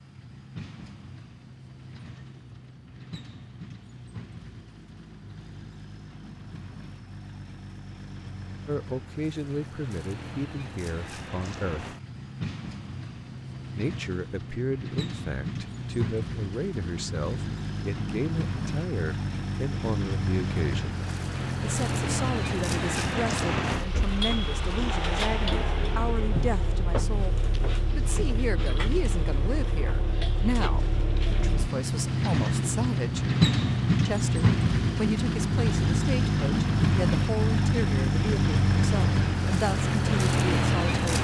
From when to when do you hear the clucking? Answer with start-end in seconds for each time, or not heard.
not heard.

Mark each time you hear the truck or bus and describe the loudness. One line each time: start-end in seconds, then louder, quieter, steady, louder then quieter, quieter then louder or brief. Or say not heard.
0.0-41.1 louder.